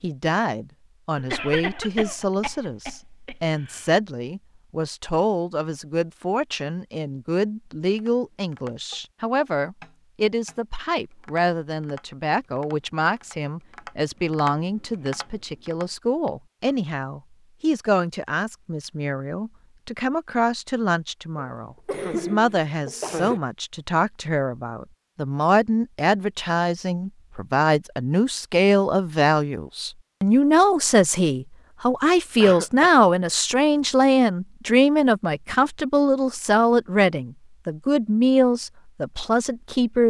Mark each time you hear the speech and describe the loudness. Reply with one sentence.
You can hear the speech from 0.0 to 40.0 s, getting louder.